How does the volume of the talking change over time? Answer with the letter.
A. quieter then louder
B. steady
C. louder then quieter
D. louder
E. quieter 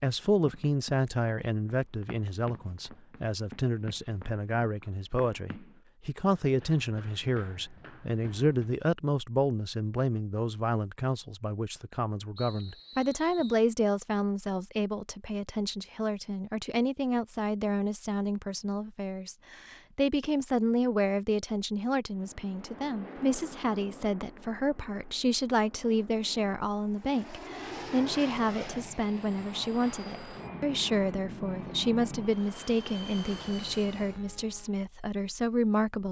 B.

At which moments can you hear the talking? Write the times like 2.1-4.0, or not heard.
0.0-36.0.